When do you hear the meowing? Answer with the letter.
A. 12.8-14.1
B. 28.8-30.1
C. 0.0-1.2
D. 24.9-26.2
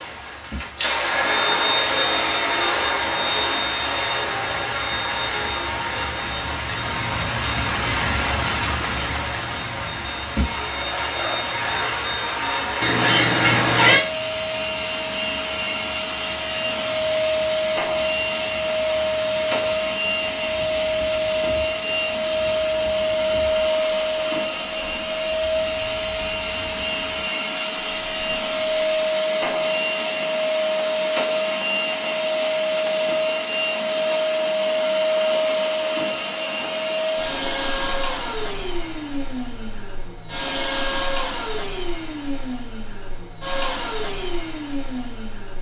A.